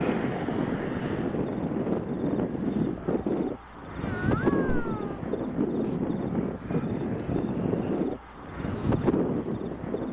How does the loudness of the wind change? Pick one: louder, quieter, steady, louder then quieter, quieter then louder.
steady.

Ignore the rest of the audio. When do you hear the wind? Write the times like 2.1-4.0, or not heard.
0.0-10.0.